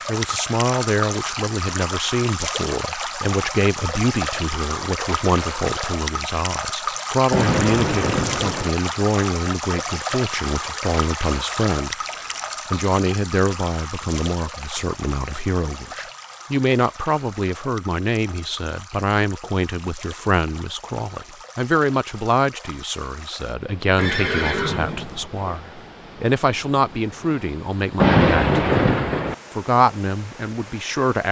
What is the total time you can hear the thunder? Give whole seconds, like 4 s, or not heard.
3 s.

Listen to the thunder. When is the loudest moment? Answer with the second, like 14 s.
28 s.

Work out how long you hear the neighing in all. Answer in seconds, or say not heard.
2 s.